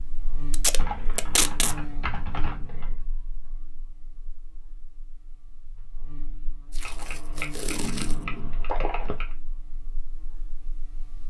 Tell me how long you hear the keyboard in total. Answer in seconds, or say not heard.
5 s.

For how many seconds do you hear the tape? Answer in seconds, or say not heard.
3 s.